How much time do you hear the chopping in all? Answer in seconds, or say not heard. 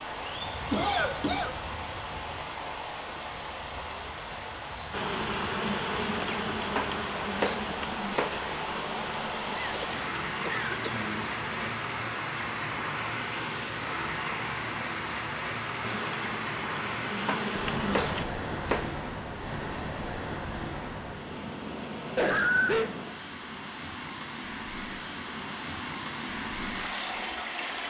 3 s.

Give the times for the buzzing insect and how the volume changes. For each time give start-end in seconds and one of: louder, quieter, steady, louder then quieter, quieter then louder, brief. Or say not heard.
4.9-11.8 quieter
15.8-18.2 brief.